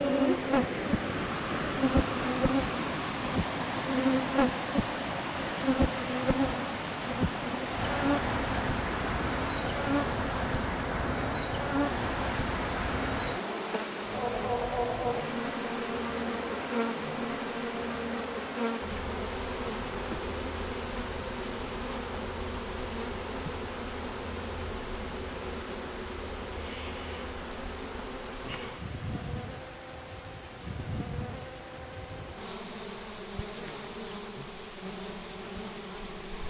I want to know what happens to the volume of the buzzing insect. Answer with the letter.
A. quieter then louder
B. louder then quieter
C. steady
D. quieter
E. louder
D.